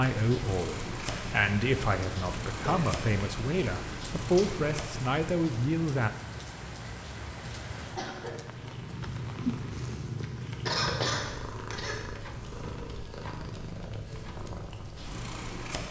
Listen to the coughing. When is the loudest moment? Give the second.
11 s.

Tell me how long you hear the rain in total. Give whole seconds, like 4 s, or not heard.
10 s.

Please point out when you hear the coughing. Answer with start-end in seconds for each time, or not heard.
2.5-3.0, 8.0-8.8, 10.7-12.0.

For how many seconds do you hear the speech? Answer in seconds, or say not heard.
6 s.